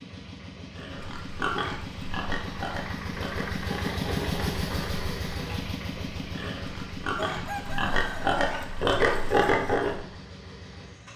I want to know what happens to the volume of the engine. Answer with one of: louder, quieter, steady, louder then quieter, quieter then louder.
louder then quieter.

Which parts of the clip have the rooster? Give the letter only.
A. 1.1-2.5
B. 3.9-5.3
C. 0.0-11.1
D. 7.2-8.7
D.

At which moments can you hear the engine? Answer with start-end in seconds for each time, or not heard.
0.0-11.1.